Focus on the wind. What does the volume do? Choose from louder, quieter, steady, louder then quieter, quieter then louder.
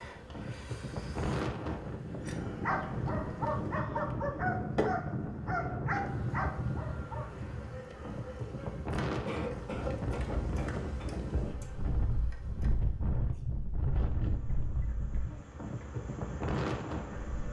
steady.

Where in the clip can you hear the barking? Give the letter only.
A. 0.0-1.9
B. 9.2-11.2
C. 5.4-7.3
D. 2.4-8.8
D.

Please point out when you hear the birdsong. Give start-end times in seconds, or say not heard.
not heard.